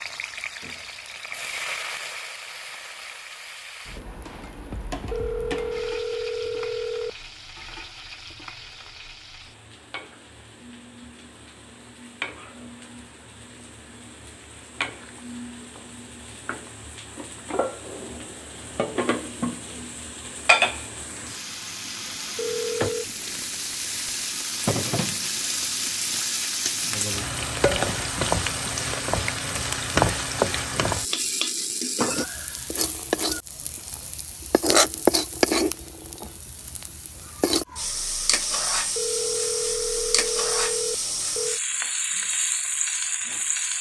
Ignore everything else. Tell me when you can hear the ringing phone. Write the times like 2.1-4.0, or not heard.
5.1-7.1, 22.4-23.1, 39.0-41.6.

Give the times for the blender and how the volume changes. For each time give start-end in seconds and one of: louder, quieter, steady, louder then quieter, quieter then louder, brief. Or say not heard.
not heard.